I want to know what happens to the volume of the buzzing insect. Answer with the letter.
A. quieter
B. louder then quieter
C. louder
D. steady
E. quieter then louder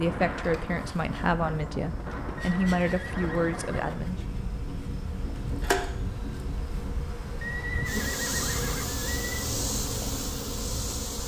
C.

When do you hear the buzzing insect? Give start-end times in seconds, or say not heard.
0.2-11.2.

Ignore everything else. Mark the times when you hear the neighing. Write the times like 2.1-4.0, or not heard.
2.4-3.9, 7.4-9.5.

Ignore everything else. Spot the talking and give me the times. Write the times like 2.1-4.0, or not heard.
0.0-4.2.